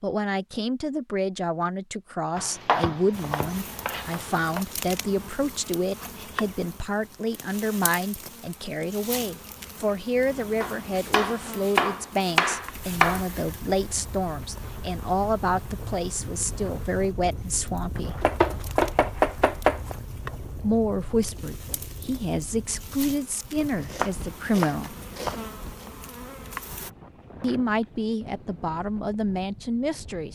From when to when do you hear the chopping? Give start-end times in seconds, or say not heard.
2.4-4.7, 10.6-13.2, 18.2-19.9, 23.6-25.4.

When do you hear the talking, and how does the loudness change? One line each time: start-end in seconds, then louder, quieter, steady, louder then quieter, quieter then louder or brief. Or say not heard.
0.0-18.1 steady
20.6-24.9 steady
27.4-30.3 brief.